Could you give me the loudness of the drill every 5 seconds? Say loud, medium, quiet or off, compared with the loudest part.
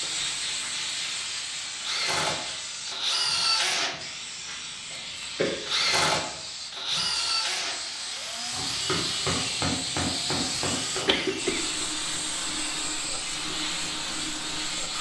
loud, loud, medium.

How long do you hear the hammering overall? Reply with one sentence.
You can hear the hammering for 3 seconds altogether.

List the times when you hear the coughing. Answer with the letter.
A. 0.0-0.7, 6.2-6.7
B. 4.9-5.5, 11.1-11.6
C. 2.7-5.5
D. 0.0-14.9
B.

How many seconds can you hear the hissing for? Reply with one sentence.
The hissing can be heard for 15 seconds in total.